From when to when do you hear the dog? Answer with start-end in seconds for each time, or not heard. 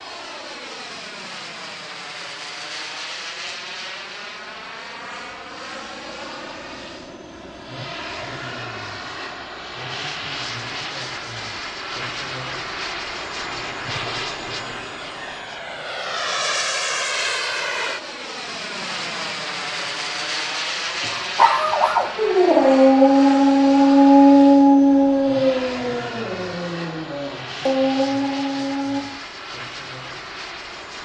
20.9-29.1.